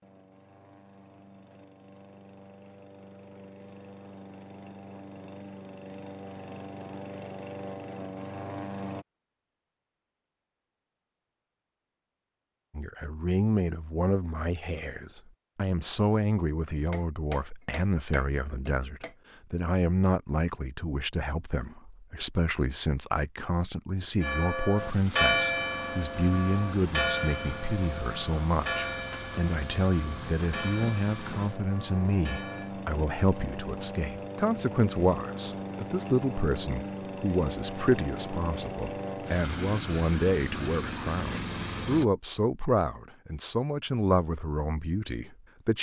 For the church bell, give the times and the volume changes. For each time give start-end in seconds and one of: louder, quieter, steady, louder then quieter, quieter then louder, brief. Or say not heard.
24.2-32.8 quieter.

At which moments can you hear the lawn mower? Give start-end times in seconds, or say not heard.
0.0-9.1, 24.8-42.0.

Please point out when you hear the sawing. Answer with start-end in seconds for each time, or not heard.
not heard.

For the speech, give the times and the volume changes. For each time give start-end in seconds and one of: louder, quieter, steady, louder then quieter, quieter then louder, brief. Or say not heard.
12.8-45.7 steady.